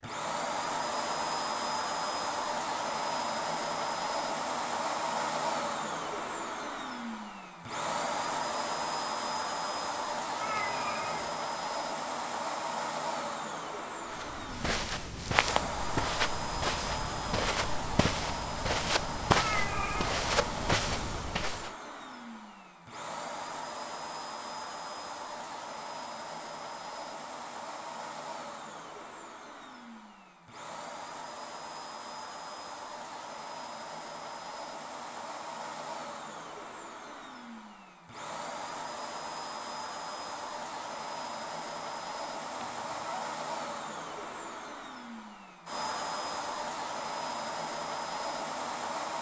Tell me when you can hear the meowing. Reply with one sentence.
The meowing can be heard from 10.4 to 11.3 s, from 19.4 to 20.1 s and from 42.5 to 43.2 s.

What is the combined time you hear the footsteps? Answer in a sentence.
The footsteps can be heard for 8 seconds in total.